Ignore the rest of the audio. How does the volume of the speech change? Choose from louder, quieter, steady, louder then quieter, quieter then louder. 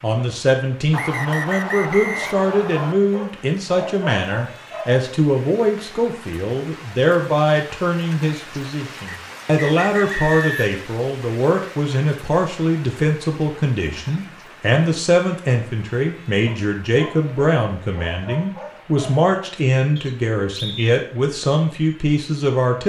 steady.